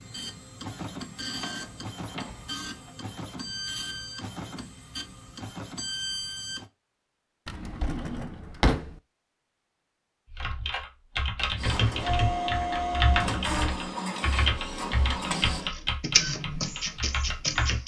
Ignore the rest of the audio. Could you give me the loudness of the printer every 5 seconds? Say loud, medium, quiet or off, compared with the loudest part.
medium, medium, loud, loud.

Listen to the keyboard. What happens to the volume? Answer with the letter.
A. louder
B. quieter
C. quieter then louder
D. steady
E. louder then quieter
B.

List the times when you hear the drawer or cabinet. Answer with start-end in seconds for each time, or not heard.
1.3-2.9, 7.5-8.9, 13.7-14.6.